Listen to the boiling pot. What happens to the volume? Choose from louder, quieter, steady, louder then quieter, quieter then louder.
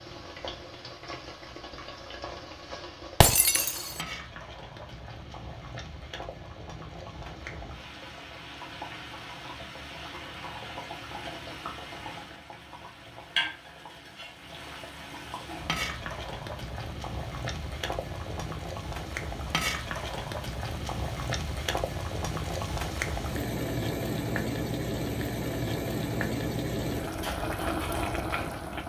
louder.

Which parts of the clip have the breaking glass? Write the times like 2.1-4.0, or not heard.
3.2-4.0.